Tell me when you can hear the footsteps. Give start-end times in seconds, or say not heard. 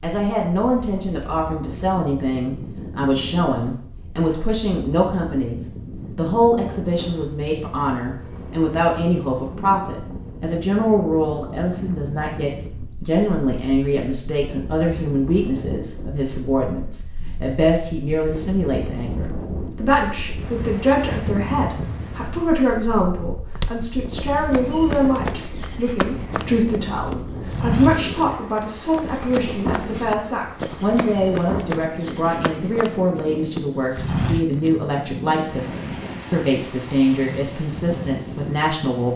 23.6-34.8.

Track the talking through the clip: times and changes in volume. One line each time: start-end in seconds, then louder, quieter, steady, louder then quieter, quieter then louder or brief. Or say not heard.
0.0-39.1 steady.